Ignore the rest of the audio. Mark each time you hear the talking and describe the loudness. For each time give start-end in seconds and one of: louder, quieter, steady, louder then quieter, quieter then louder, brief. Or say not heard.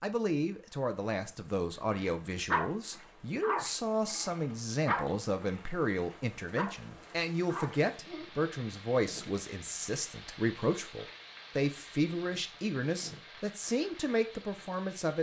0.0-15.1 steady.